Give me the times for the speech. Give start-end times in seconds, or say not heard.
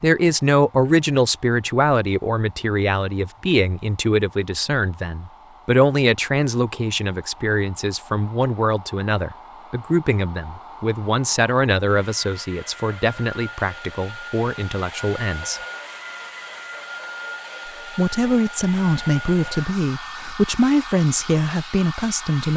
0.0-15.6, 17.9-22.5.